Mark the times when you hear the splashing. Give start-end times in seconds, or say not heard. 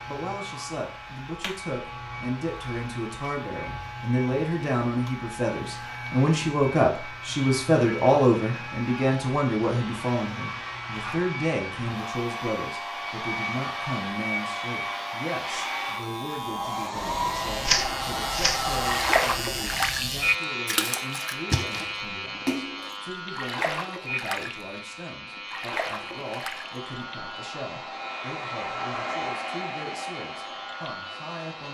17.6-20.1, 20.6-24.6, 25.4-26.7.